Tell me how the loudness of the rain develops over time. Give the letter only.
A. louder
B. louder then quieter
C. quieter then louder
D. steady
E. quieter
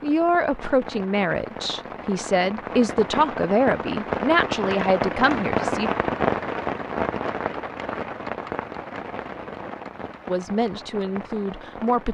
B.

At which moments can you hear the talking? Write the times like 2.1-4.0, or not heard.
0.0-5.9, 10.2-12.0.